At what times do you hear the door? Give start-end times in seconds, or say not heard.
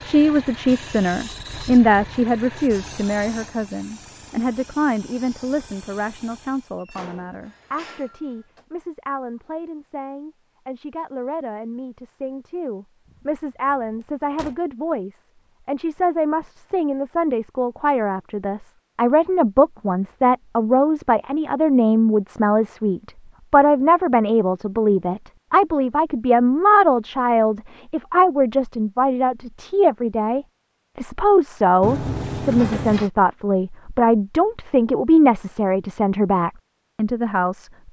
6.8-8.7, 13.1-14.6, 31.8-33.1.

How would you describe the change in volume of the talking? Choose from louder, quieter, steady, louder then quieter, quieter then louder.
quieter then louder.